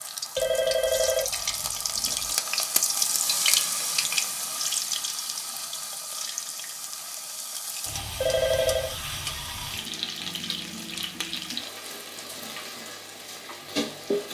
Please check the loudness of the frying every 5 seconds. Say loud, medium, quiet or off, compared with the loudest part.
loud, medium, medium.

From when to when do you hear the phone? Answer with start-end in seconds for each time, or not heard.
0.3-2.1, 8.2-8.9.